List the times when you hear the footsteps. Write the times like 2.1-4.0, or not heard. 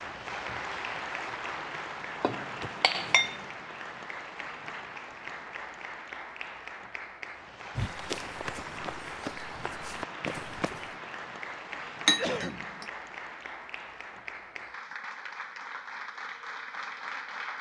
7.8-10.9.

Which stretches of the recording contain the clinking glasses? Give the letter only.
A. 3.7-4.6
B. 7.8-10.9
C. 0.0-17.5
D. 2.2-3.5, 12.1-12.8
D.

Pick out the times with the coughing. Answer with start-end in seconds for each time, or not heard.
11.8-12.7.